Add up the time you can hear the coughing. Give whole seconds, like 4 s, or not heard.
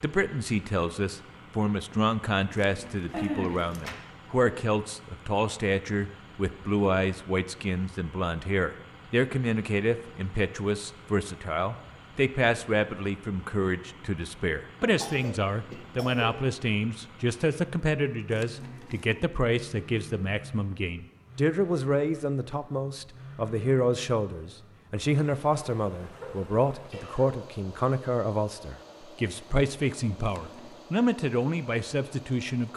4 s.